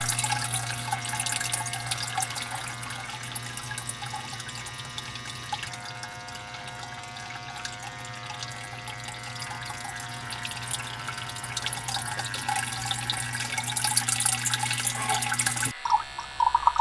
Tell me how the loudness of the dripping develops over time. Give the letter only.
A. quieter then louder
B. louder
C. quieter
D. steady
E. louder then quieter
A.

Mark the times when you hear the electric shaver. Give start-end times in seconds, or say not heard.
0.0-16.7.